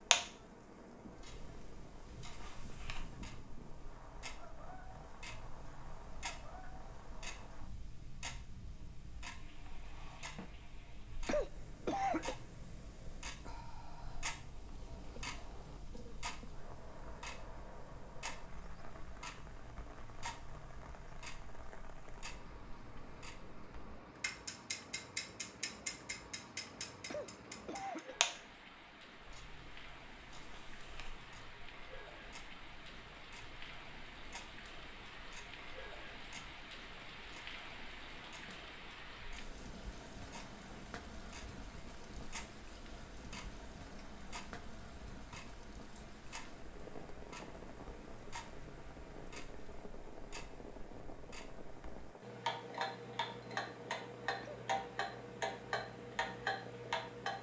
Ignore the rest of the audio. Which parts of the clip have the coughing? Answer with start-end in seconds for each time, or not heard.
11.2-12.3, 27.1-28.1, 54.4-55.0.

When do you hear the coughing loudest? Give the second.
12 s.